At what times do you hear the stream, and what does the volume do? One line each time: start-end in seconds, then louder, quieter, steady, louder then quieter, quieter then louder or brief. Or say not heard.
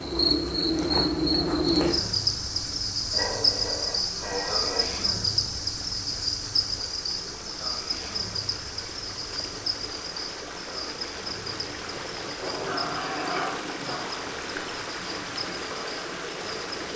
0.0-16.9 louder.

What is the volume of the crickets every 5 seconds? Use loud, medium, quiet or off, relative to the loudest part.
loud, medium, quiet, quiet.